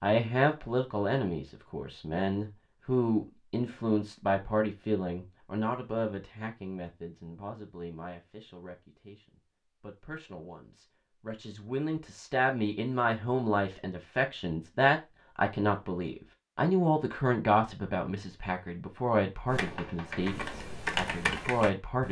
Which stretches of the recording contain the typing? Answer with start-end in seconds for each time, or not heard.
19.4-22.0.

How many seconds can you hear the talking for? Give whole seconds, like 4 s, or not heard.
22 s.